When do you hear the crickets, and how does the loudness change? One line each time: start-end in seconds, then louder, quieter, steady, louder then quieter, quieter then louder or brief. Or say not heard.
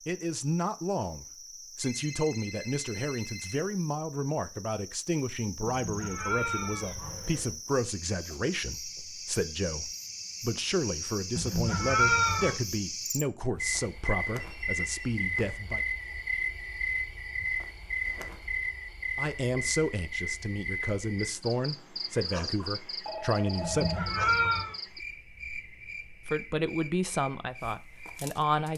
0.0-28.7 louder then quieter.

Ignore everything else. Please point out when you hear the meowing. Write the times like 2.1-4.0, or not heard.
5.7-7.5, 11.3-12.6, 23.6-24.8.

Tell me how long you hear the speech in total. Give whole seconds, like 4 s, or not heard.
23 s.